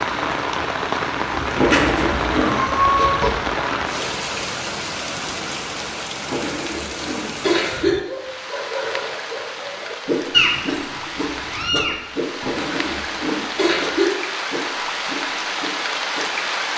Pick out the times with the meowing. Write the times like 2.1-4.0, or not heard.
1.3-3.4, 10.3-12.0.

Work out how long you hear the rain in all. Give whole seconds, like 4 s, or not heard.
17 s.